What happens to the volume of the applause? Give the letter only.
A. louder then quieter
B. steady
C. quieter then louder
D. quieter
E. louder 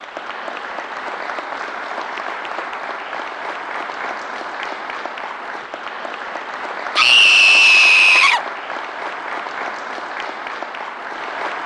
B.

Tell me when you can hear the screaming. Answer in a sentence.
You can hear the screaming from 7.0 to 8.4 s.